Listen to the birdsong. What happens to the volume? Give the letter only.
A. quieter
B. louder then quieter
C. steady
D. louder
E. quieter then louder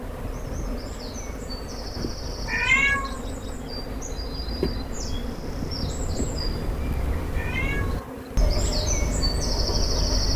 D.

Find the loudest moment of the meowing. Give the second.
3 s.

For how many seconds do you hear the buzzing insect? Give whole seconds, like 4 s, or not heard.
10 s.